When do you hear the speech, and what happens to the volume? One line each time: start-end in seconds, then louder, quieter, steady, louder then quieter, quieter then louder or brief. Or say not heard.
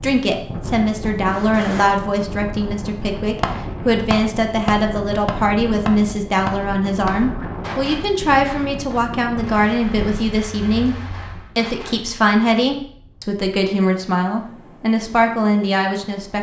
0.0-16.3 steady.